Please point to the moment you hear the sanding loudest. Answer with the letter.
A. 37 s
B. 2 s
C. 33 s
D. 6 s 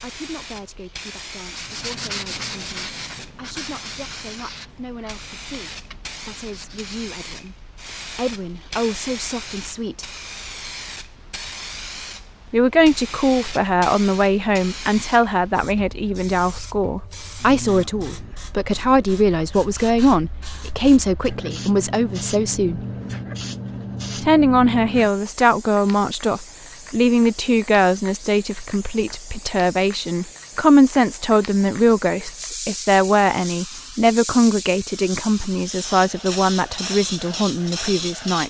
B.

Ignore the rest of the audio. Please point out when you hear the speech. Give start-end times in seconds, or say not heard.
0.0-7.5, 8.2-10.1, 12.5-22.8, 24.2-38.4.